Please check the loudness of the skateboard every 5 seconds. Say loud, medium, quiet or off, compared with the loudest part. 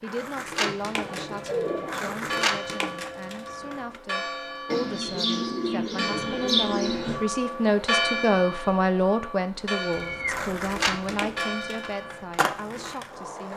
loud, off, loud.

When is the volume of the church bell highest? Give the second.
8 s.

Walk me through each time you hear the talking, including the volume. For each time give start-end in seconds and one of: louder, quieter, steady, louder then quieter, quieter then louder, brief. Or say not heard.
0.0-13.5 louder then quieter.